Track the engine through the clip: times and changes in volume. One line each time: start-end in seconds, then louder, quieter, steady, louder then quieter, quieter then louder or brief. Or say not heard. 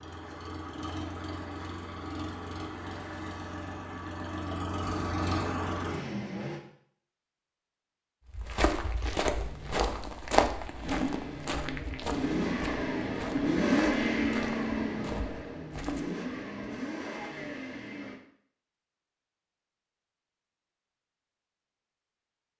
0.0-6.6 louder
9.3-18.2 louder then quieter.